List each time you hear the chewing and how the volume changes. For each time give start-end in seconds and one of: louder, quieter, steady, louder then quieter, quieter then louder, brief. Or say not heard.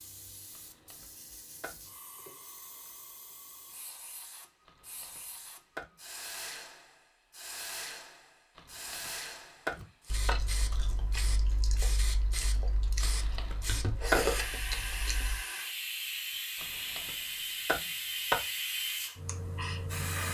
9.8-15.4 louder.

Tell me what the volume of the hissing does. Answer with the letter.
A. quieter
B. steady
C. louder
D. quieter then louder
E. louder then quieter
C.